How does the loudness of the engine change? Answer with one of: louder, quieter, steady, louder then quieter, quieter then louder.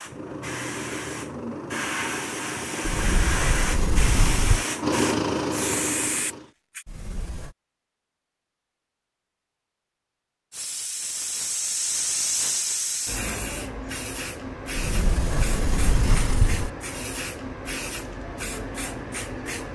louder.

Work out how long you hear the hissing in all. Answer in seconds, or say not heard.
16 s.